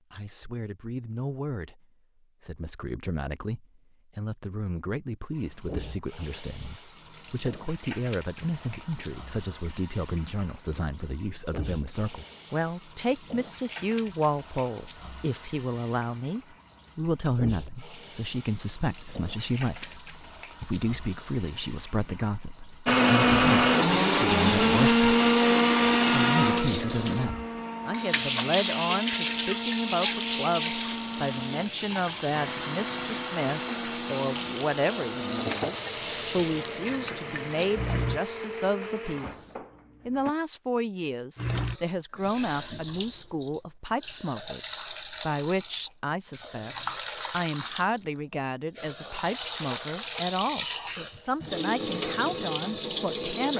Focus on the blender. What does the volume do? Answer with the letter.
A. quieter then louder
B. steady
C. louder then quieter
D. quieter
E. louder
D.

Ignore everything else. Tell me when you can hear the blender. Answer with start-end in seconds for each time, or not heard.
22.9-40.4.